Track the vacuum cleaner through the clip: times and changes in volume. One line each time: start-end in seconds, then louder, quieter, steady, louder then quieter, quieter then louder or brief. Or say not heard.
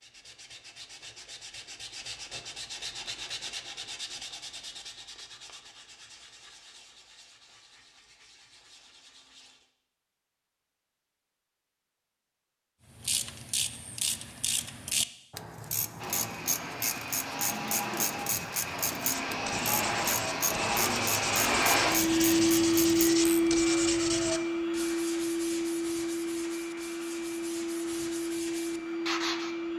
15.9-29.7 louder then quieter.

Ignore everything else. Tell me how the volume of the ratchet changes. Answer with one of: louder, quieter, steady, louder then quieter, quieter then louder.
steady.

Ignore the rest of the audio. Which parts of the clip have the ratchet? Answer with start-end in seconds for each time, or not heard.
12.9-23.5.